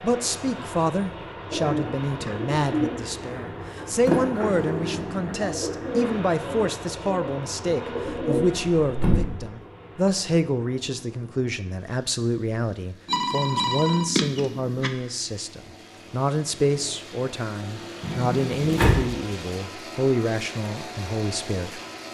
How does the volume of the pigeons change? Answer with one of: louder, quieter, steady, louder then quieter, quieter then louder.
quieter then louder.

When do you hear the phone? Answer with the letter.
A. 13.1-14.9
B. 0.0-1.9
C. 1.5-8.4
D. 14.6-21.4
A.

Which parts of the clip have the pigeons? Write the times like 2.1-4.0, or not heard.
1.5-8.4.